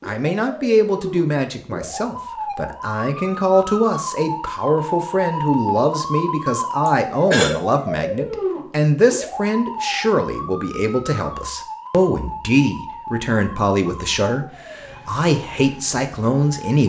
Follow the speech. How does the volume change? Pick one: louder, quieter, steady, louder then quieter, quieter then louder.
steady.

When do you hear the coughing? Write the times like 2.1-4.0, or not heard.
6.8-7.5.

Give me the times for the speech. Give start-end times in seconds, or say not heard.
0.1-16.8.